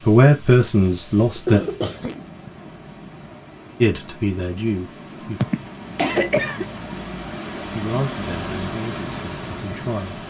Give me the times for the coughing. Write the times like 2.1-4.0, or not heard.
0.8-2.5, 5.4-6.7.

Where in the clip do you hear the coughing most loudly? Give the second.
6 s.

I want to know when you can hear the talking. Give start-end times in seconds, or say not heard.
0.0-1.6, 3.8-5.5, 7.5-10.2.